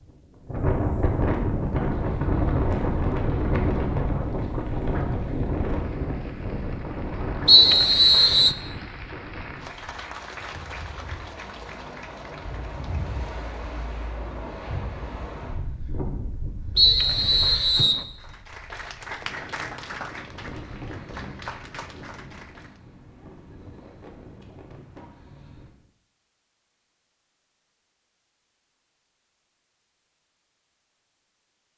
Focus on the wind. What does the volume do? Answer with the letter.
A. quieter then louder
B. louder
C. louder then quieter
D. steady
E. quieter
E.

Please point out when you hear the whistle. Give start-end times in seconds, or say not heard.
7.5-8.6, 16.8-18.1.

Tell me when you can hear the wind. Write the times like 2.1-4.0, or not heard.
0.0-25.7.